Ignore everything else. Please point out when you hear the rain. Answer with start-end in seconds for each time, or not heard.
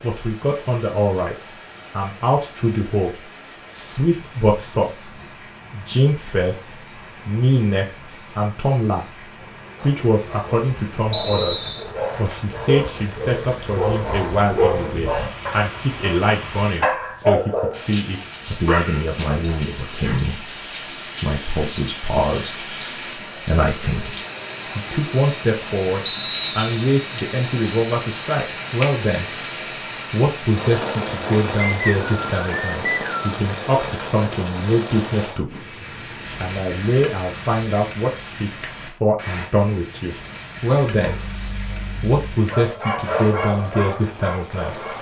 0.0-44.9.